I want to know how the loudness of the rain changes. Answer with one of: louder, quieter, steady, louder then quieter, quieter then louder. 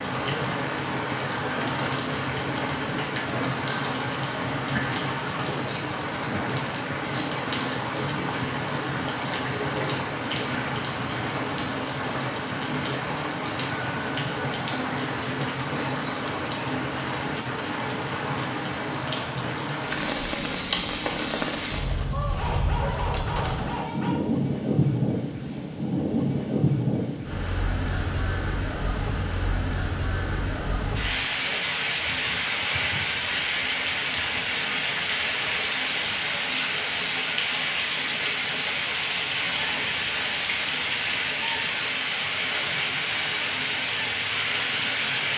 steady.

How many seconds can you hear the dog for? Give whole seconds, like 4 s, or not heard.
2 s.